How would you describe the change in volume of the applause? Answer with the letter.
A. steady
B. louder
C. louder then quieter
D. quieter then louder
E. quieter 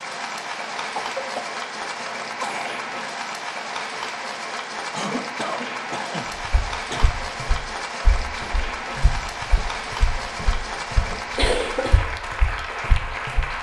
A.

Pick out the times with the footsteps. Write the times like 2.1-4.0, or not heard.
6.4-13.5.